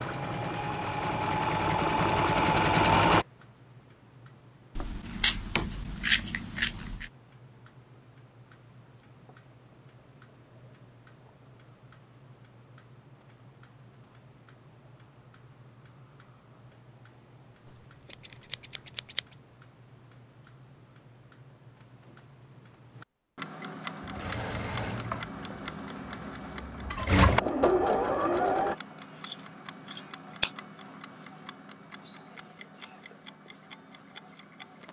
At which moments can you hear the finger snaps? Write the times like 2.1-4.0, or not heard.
not heard.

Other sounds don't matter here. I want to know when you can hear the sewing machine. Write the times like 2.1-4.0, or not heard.
0.0-3.2, 24.0-28.8.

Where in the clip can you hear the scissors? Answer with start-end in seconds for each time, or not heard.
4.8-7.0, 18.1-19.2, 29.1-30.5.